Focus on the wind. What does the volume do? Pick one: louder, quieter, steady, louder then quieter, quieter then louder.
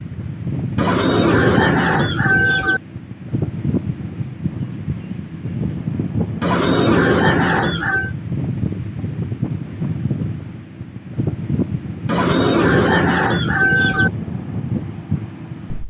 steady.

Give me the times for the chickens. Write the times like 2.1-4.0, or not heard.
0.8-2.8, 6.4-8.1, 12.1-14.1.